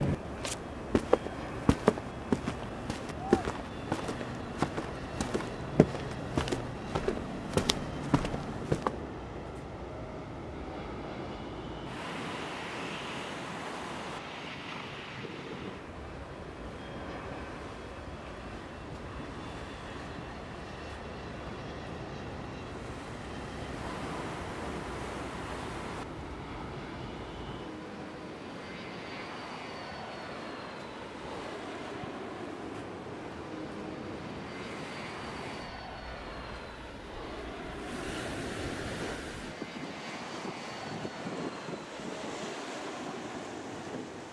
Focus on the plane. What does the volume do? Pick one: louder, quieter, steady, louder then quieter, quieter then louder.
steady.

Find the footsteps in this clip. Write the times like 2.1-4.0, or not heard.
0.1-9.0.